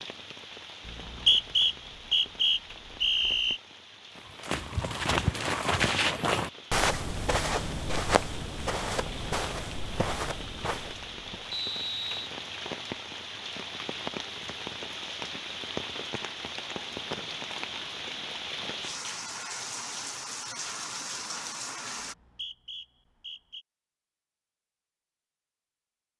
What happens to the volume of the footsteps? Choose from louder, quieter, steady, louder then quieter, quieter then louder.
quieter.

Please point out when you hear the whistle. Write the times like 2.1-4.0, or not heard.
0.8-3.6, 11.5-12.3, 22.0-23.6.